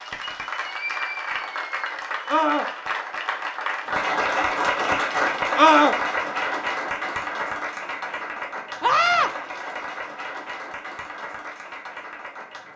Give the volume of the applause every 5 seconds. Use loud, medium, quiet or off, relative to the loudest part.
loud, loud, medium.